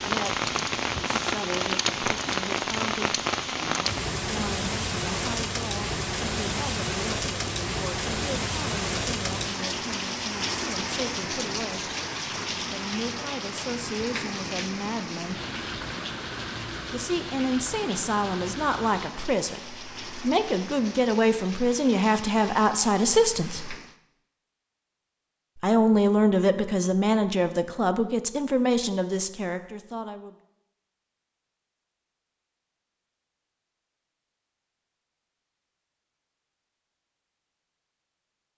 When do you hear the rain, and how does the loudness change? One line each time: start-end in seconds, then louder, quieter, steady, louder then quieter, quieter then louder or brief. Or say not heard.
0.0-23.9 quieter.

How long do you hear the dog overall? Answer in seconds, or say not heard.
not heard.